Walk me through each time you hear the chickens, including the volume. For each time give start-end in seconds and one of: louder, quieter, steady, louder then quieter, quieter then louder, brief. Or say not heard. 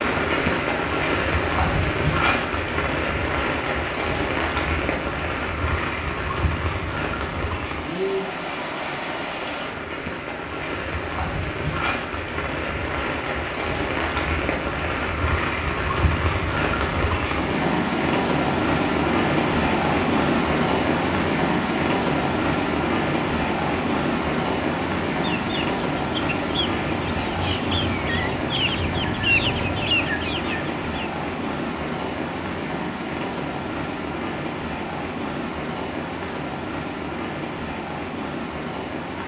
25.1-31.1 louder.